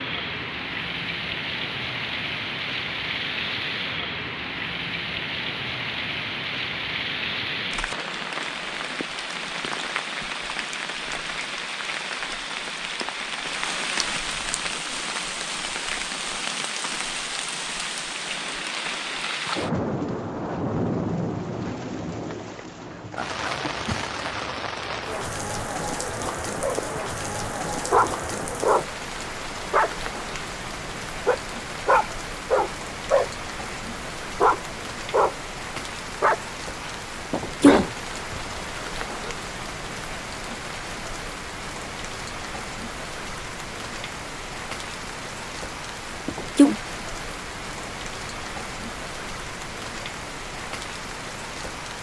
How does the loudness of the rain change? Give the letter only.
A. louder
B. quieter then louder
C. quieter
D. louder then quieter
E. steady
E.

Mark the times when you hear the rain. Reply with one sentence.
You can hear the rain from 0.0 to 51.9 s.